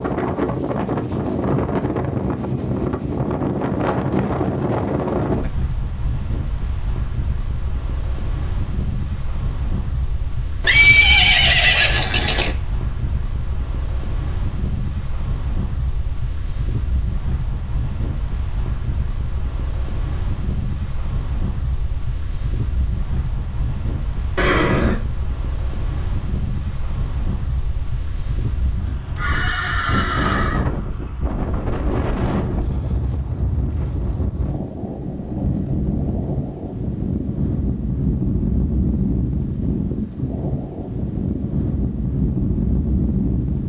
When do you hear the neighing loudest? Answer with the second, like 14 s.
11 s.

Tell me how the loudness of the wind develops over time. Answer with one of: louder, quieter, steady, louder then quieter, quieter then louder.
quieter then louder.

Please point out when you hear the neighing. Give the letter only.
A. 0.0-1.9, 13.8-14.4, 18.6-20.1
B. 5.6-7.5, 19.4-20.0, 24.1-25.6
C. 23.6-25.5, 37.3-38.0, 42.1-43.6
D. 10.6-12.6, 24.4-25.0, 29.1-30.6
D.